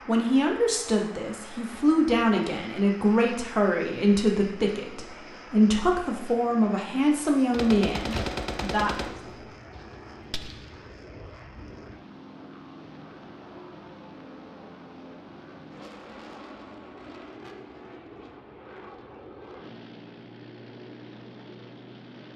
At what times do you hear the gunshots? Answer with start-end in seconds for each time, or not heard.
7.3-10.7.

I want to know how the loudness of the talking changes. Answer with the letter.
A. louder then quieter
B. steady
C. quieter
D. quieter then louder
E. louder
B.